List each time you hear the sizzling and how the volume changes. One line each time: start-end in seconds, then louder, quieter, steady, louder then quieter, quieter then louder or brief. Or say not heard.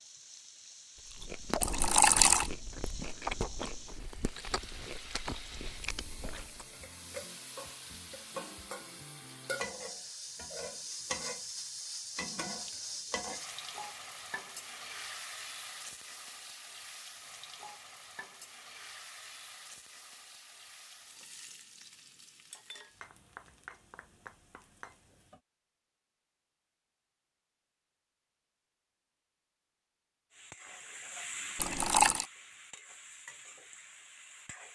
0.0-25.4 louder then quieter
30.3-34.7 quieter.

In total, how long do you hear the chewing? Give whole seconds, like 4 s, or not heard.
6 s.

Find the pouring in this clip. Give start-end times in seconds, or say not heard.
1.6-2.5, 31.6-32.2.